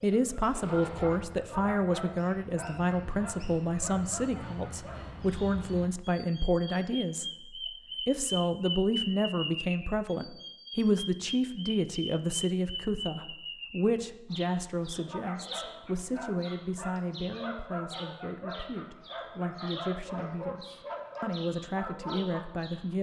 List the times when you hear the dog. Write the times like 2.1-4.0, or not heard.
0.1-5.0, 14.9-22.4.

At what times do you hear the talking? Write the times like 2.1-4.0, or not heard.
0.0-22.9.